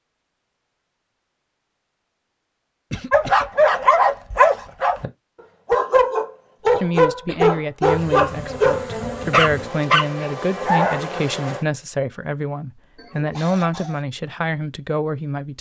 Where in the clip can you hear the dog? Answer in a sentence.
You can hear the dog from 3.1 to 11.0 s.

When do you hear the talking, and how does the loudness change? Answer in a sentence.
The talking can be heard from 6.8 to 15.5 s, at a steady volume.